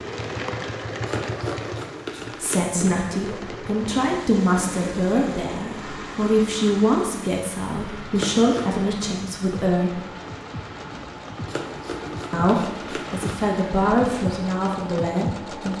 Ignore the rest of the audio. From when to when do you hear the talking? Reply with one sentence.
The talking can be heard from 2.4 to 9.9 s and from 12.3 to 15.7 s.